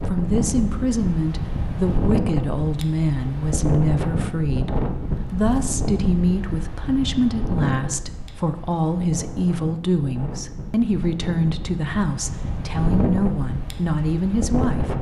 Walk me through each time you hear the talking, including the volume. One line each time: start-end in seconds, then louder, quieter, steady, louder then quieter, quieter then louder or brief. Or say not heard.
0.0-14.9 steady.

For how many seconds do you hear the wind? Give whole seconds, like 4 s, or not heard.
15 s.